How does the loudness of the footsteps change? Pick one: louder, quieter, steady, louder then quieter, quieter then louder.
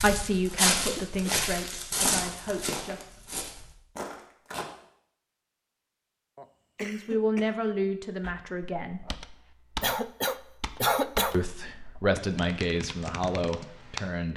quieter.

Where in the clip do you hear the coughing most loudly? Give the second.
11 s.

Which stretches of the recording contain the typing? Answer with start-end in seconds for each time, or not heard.
8.2-14.1.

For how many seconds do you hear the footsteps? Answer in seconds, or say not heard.
5 s.